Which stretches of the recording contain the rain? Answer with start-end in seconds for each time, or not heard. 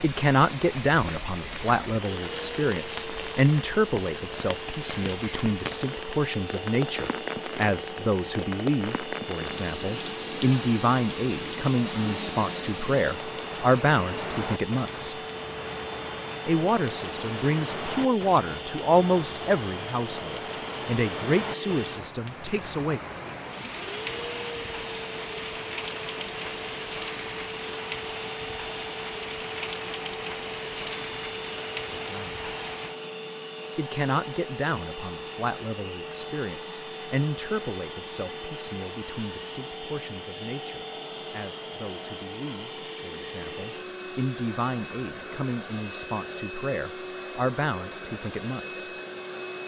0.0-33.0.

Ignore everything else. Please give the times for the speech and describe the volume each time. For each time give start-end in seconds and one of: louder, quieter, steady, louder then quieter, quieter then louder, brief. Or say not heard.
0.0-15.2 steady
16.4-23.0 louder then quieter
31.9-32.5 brief
33.8-48.9 quieter then louder.